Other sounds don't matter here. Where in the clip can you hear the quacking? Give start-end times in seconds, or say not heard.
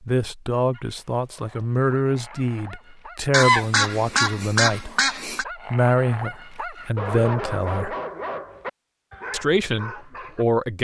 3.3-5.5.